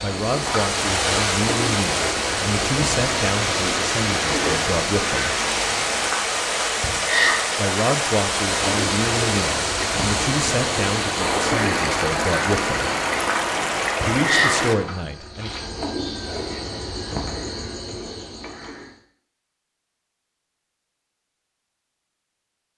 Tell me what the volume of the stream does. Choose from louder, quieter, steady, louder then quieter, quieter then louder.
steady.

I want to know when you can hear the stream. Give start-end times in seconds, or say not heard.
0.0-14.8.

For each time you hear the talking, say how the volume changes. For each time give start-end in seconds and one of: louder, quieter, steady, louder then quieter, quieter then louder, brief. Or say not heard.
0.0-5.4 steady
7.5-12.9 steady
14.1-15.5 brief.